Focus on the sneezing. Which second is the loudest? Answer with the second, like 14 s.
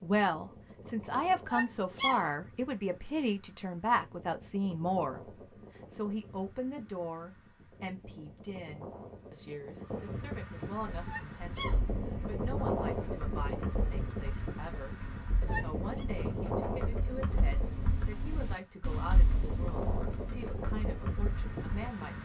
2 s.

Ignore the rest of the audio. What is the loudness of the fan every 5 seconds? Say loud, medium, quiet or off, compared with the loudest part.
quiet, medium, loud, loud, loud.